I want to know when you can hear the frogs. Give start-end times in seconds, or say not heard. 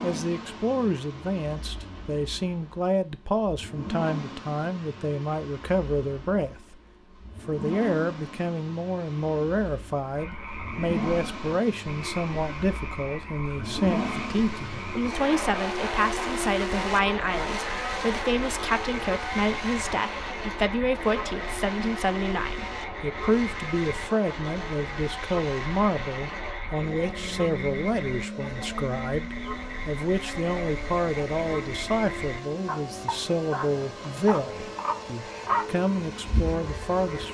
10.1-37.2.